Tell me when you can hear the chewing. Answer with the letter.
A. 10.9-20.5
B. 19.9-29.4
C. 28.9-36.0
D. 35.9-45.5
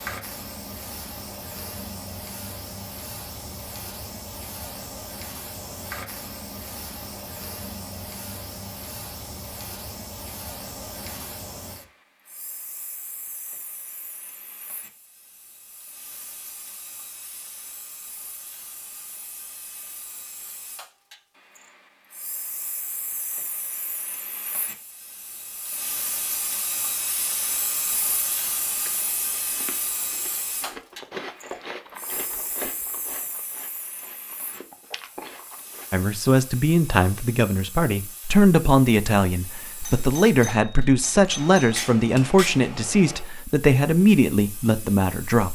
C.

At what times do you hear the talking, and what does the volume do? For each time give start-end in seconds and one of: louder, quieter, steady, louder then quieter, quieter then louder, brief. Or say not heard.
35.9-45.5 steady.